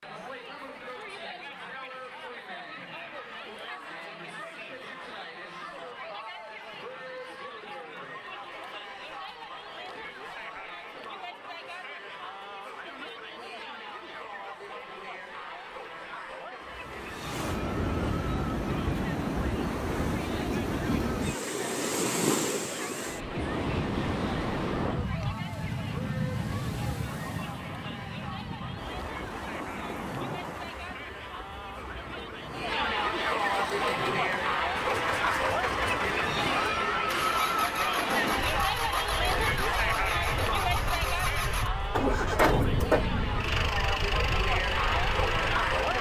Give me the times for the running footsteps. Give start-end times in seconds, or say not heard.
not heard.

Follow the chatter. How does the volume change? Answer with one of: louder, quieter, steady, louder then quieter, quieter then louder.
louder.